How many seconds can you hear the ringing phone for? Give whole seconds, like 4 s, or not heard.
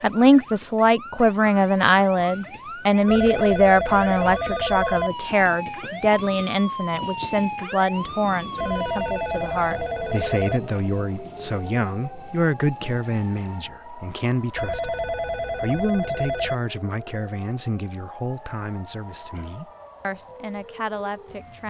6 s.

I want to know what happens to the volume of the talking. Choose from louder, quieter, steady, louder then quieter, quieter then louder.
quieter.